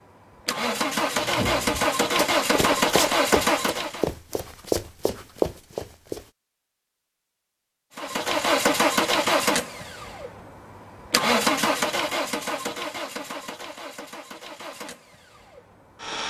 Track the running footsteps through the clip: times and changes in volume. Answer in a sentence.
The running footsteps can be heard from 1.1 to 6.2 s, getting louder.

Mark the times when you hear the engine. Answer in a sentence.
The engine can be heard from 0.0 to 4.0 s and from 8.0 to 16.2 s.